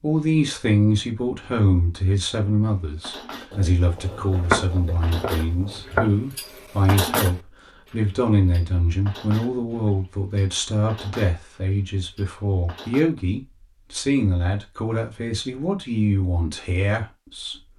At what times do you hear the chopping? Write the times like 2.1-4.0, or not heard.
4.4-6.1.